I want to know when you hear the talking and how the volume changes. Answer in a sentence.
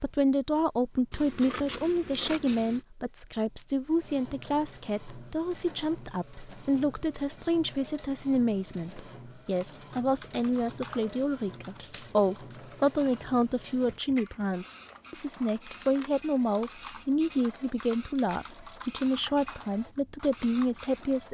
You can hear the talking from 0.0 to 21.2 s, at a steady volume.